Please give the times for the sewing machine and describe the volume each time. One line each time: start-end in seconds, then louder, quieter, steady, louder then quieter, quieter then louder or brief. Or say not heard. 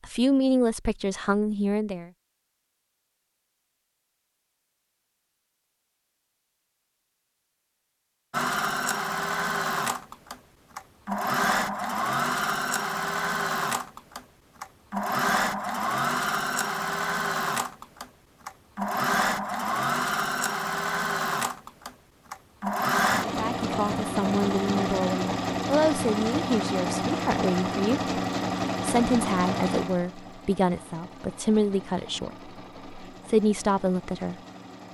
8.3-34.8 quieter.